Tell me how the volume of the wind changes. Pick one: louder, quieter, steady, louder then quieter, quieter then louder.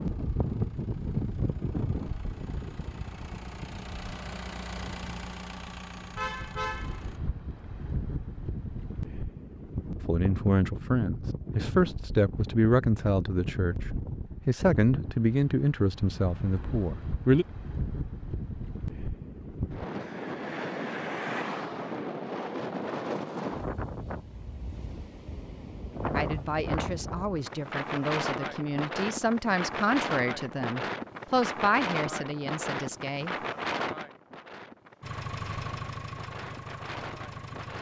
steady.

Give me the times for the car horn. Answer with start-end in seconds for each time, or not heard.
6.2-7.0.